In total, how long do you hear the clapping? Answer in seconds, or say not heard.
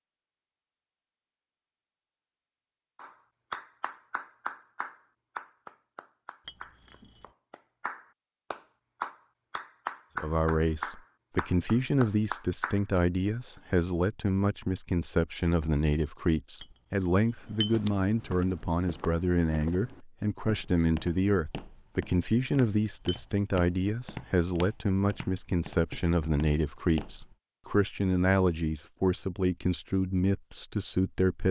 10 s.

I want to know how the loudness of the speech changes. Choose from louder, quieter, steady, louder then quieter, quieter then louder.
steady.